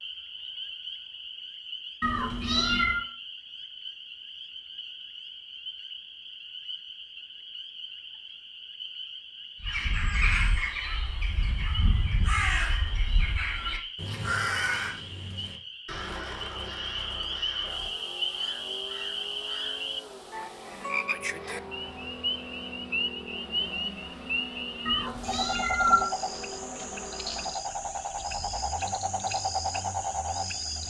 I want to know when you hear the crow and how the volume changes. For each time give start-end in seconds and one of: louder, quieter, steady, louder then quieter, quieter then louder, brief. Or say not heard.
9.6-19.8 quieter.